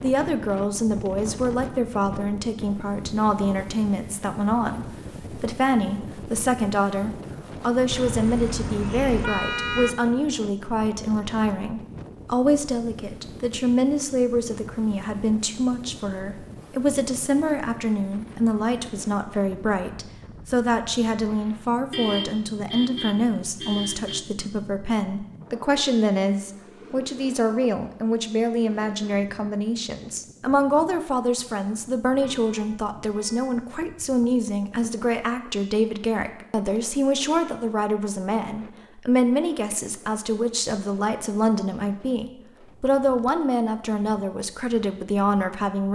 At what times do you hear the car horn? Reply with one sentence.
The car horn can be heard from 7.9 to 9.9 s, from 21.9 to 24.2 s and from 32.1 to 33.5 s.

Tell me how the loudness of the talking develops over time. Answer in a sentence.
The loudness of the talking stays about the same.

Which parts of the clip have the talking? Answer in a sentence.
You can hear the talking from 0.0 to 45.9 s.